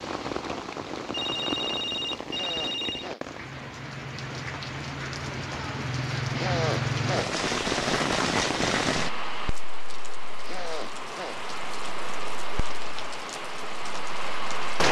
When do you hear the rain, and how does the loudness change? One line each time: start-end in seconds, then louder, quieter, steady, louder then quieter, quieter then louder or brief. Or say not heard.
0.0-14.8 louder then quieter.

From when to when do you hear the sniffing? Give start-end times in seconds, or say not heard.
2.2-3.2, 6.3-7.3, 10.4-11.4.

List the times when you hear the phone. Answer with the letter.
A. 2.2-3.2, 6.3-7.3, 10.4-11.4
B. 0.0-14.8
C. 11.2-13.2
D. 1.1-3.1
D.